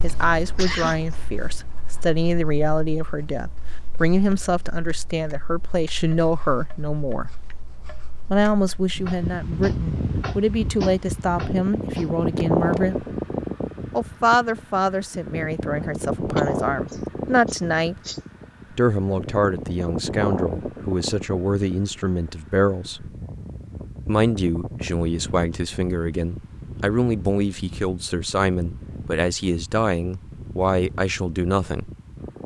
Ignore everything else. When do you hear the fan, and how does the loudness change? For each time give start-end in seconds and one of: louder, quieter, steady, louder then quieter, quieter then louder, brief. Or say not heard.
8.9-32.4 quieter.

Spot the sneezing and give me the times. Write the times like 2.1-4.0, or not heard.
0.3-1.2, 16.4-18.2.